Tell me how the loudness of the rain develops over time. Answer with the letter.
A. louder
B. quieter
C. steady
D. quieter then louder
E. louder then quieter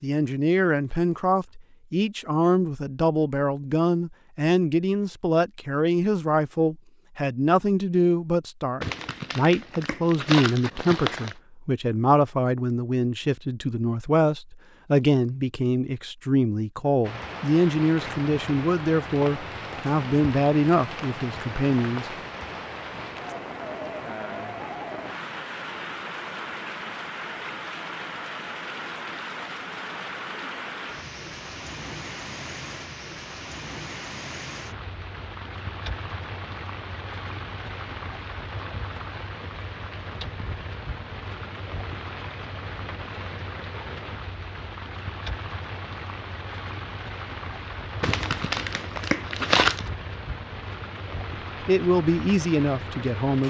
C.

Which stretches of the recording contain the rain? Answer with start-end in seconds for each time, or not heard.
17.0-53.4.